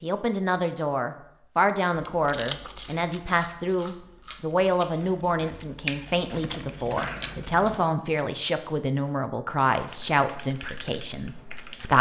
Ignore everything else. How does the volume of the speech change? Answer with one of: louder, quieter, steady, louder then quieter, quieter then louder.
steady.